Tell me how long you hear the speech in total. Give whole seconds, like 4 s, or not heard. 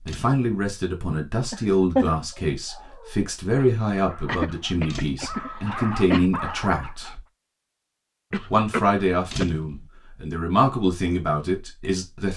11 s.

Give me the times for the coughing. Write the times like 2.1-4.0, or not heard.
1.5-2.1, 4.2-6.2, 8.3-9.4.